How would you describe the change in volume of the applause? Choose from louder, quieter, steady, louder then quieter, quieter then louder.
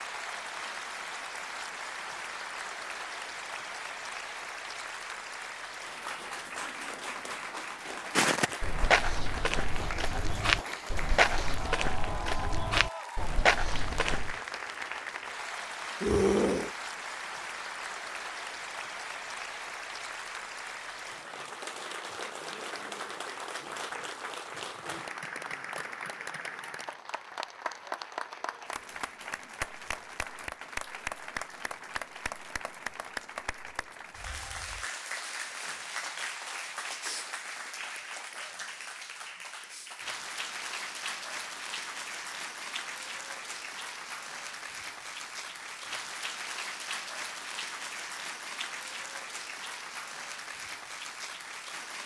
steady.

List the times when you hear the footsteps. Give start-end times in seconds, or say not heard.
8.2-14.3.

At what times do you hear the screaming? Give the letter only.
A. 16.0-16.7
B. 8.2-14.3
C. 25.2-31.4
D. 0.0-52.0
A.